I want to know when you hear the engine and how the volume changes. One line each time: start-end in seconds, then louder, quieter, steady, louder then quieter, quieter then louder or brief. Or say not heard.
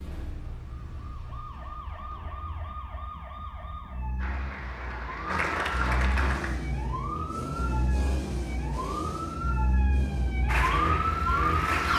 6.2-11.7 quieter.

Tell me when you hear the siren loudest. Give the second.
11 s.